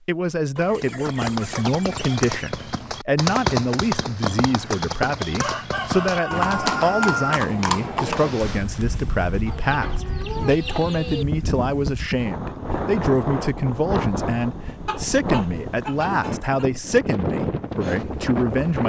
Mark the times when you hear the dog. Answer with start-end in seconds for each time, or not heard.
not heard.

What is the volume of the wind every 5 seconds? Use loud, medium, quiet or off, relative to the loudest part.
off, medium, loud, loud.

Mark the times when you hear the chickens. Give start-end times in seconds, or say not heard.
0.6-2.5, 5.4-7.4, 9.4-11.2, 14.8-16.6.